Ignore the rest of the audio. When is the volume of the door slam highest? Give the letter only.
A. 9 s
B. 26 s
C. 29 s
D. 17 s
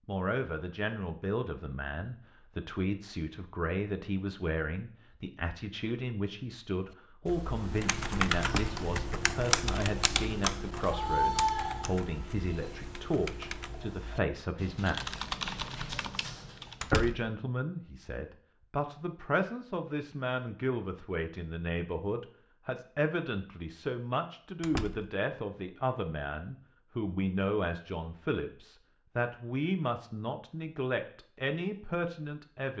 D.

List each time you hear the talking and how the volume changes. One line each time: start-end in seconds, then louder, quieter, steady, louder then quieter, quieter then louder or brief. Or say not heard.
0.1-15.2 steady
16.9-32.7 steady.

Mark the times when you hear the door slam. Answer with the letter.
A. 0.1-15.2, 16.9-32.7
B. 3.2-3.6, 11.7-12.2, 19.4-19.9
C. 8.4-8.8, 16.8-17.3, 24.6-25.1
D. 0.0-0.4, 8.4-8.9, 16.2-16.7
C.